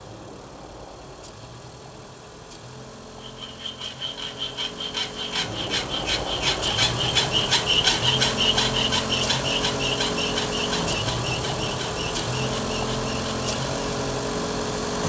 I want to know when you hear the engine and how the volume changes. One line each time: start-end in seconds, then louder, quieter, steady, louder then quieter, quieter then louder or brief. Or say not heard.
0.0-15.0 louder.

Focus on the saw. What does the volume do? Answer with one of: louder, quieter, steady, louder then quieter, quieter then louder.
louder then quieter.